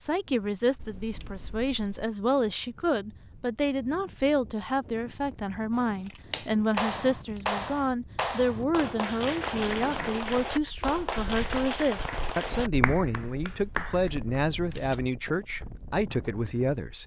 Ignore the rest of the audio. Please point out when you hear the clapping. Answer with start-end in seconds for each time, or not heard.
5.7-14.2.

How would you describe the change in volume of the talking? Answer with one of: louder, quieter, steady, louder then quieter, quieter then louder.
steady.